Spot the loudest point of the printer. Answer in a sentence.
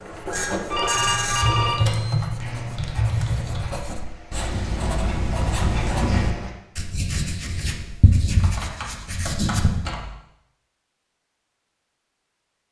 The loudest moment of the printer is at 1 second.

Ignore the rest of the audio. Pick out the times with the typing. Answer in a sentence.
You can hear the typing from 0.9 to 3.8 s and from 8.4 to 10.1 s.